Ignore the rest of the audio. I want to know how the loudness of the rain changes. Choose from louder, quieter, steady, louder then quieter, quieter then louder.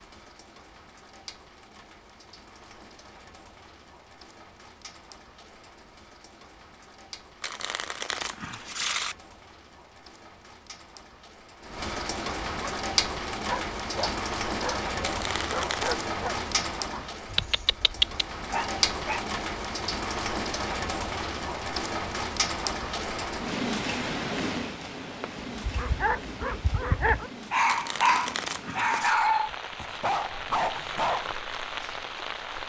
louder then quieter.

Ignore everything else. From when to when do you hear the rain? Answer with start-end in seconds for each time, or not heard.
0.0-32.6.